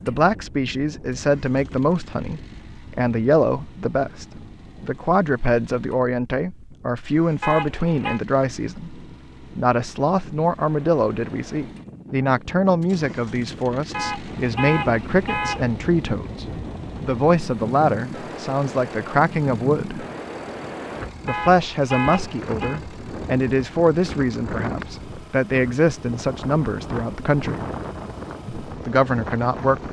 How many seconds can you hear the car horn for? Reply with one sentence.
The car horn can be heard for 4 seconds in total.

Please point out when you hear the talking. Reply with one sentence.
You can hear the talking from 0.0 to 20.1 s, from 21.2 to 27.6 s and from 28.6 to 29.8 s.